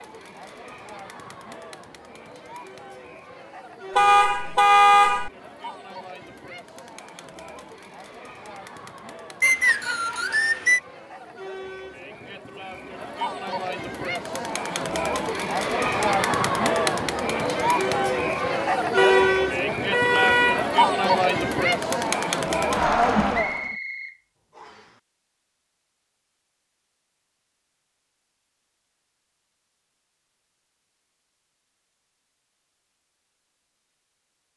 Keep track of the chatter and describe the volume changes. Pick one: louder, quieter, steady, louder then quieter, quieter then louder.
louder.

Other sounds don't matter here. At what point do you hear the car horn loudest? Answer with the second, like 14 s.
5 s.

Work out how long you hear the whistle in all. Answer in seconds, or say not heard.
3 s.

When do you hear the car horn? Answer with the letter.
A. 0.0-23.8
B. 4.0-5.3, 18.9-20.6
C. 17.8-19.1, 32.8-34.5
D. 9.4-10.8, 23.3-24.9
B.